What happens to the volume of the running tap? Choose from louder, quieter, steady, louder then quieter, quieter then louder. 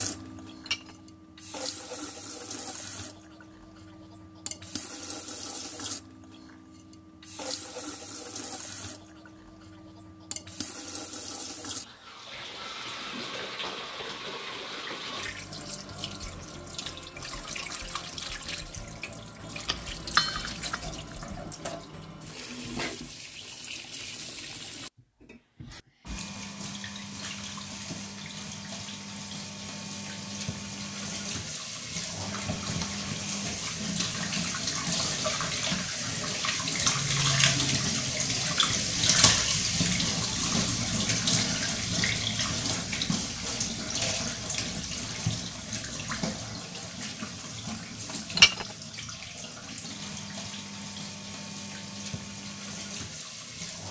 louder then quieter.